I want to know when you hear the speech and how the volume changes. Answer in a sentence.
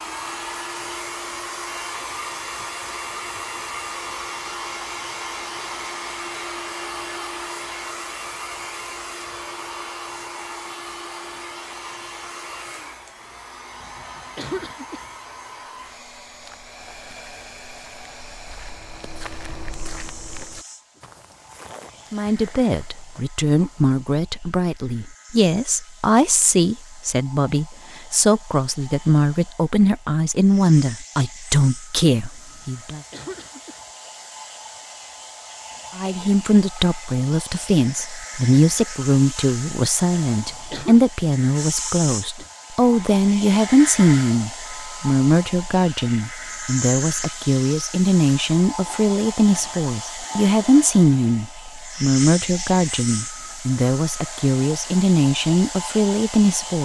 The speech can be heard from 22.1 to 33.0 s, at a steady volume; and from 36.0 to 56.8 s, at a steady volume.